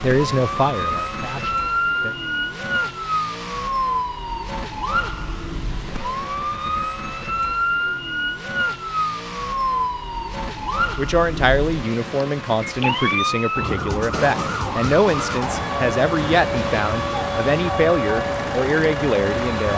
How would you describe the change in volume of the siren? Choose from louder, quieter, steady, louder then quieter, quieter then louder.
steady.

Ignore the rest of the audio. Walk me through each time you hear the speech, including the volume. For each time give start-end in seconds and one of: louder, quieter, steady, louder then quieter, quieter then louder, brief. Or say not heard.
0.0-2.1 brief
10.9-19.7 steady.